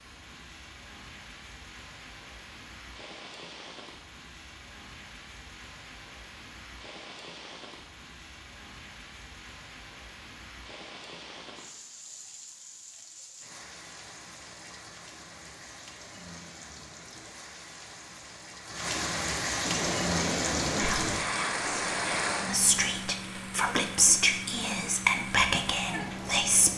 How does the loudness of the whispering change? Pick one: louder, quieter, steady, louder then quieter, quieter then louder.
louder.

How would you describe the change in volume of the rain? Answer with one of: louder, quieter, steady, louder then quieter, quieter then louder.
louder.